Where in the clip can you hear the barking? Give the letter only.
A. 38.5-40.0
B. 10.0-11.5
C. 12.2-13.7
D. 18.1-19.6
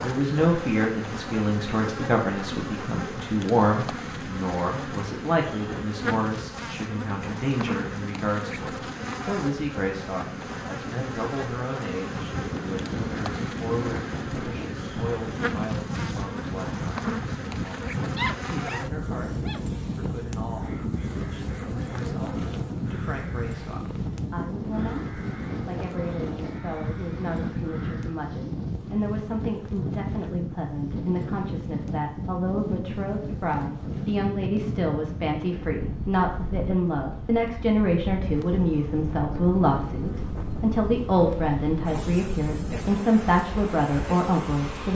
D.